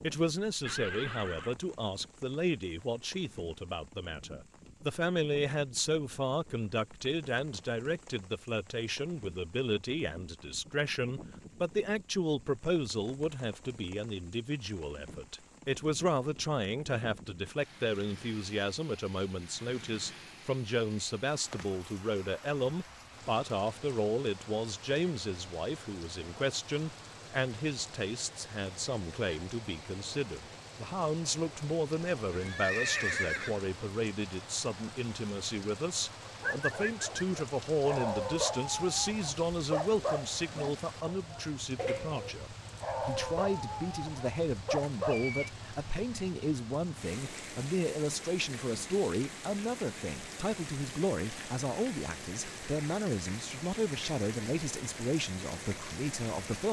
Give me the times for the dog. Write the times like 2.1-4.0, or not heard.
36.4-45.3.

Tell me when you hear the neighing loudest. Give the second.
33 s.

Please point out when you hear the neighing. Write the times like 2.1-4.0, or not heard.
0.7-1.6, 32.2-33.6, 45.0-45.5.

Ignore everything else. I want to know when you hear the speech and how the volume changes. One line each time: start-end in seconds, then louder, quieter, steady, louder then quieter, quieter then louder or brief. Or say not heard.
0.0-56.6 steady.